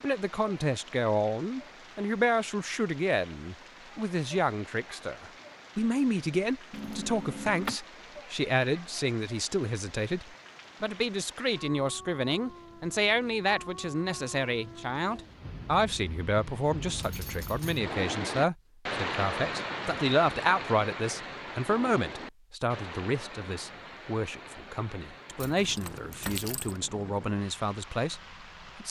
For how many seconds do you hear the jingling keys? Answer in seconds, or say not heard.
3 s.